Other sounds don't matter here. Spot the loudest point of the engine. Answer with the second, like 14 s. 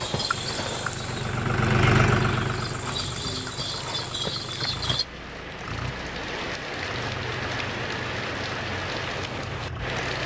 2 s.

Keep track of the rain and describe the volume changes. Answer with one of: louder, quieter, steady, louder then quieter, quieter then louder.
louder.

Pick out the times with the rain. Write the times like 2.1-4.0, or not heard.
3.5-10.2.